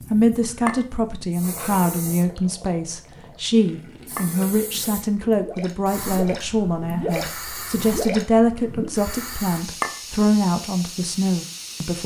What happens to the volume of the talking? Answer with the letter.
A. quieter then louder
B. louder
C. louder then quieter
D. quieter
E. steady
E.